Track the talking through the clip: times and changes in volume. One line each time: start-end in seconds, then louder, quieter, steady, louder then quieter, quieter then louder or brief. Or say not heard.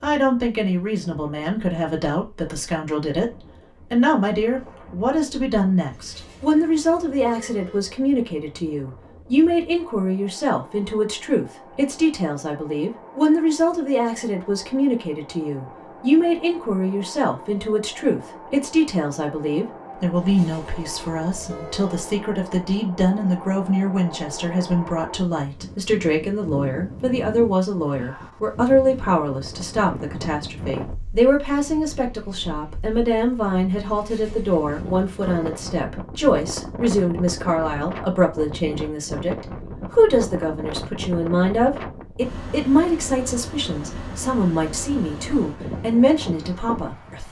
0.0-47.2 steady.